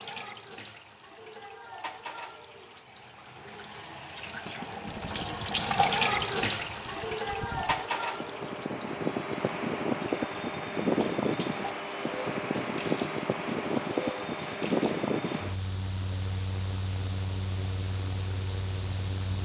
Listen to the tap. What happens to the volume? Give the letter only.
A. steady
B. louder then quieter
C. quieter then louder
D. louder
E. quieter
B.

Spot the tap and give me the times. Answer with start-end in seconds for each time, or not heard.
0.0-15.7.